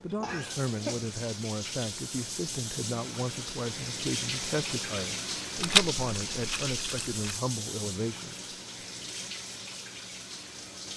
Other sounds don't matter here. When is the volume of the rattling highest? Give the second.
6 s.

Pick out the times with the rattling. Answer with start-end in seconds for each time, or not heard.
5.5-7.4.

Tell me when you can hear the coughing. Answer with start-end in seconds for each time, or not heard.
0.2-1.1.